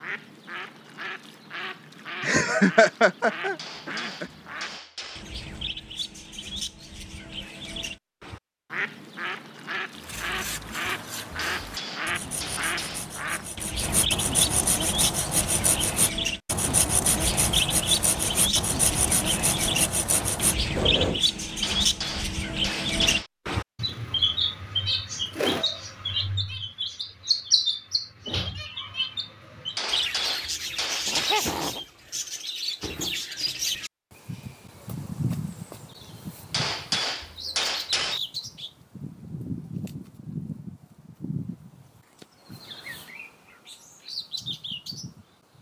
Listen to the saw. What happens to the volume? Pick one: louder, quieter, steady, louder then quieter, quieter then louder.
louder.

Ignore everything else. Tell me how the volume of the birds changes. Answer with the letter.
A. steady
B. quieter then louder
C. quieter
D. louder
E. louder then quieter
E.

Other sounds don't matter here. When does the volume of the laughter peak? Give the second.
3 s.